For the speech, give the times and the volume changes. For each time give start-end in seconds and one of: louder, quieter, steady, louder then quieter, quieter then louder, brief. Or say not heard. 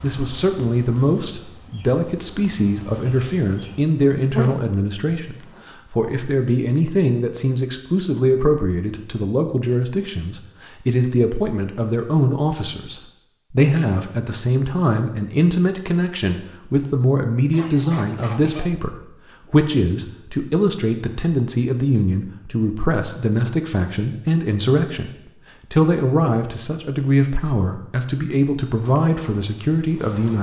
0.0-30.3 steady.